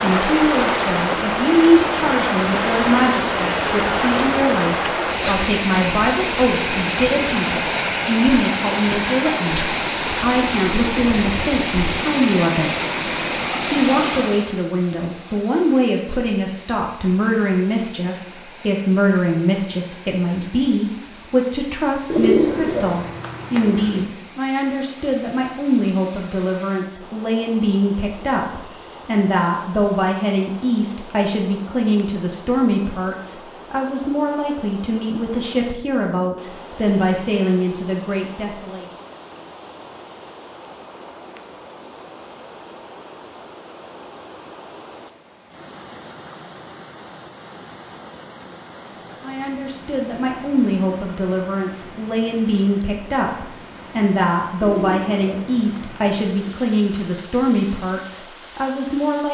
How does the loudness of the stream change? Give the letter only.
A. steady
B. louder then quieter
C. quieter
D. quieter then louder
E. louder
C.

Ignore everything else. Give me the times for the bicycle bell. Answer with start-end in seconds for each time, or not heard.
not heard.